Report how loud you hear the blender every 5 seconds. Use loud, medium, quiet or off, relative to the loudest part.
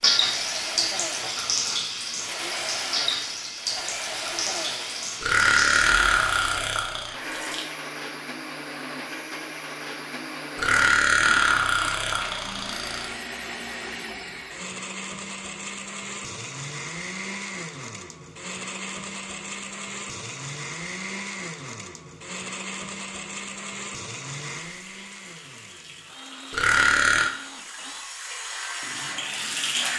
loud, loud, loud, loud, loud, medium.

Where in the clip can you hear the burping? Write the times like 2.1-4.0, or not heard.
5.2-7.2, 10.6-13.2, 26.5-27.3.